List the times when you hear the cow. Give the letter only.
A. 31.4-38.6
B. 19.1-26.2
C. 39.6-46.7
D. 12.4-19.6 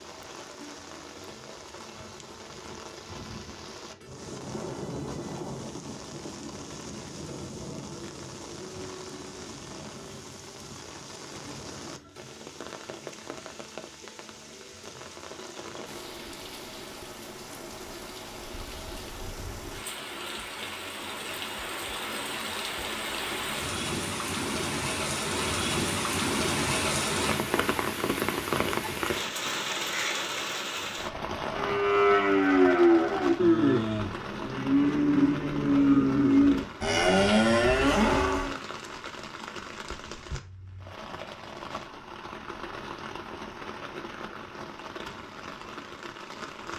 A.